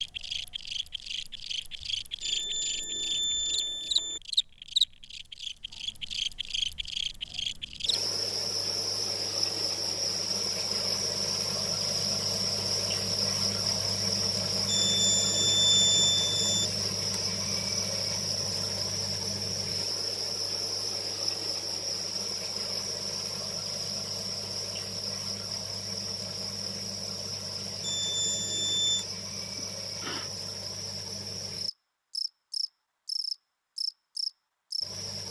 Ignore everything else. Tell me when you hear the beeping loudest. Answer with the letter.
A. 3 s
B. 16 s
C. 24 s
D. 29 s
B.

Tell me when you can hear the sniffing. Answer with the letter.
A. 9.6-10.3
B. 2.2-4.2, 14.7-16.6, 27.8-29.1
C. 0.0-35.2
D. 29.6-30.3
D.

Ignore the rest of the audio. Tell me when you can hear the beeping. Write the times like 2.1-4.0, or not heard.
2.2-4.2, 14.7-16.6, 27.8-29.1.